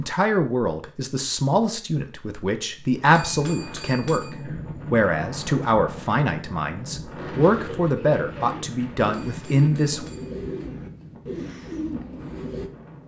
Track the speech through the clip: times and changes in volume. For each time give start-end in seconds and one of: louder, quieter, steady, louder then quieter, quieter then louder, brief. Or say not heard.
0.0-10.1 steady.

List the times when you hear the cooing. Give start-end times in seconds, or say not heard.
7.2-12.7.